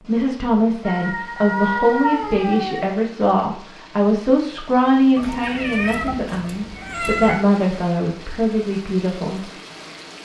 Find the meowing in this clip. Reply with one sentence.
The meowing can be heard from 0.8 to 3.0 s and from 5.2 to 7.4 s.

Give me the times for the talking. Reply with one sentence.
You can hear the talking from 0.0 to 9.4 s.